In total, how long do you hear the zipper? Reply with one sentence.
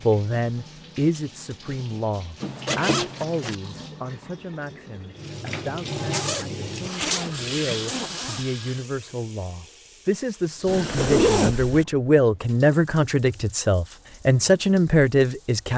You can hear the zipper for 5 seconds altogether.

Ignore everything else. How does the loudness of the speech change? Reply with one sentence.
The volume of the speech goes down, then up.